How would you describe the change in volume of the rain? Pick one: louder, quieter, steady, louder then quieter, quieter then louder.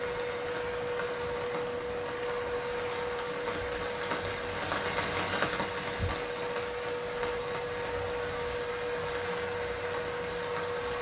louder then quieter.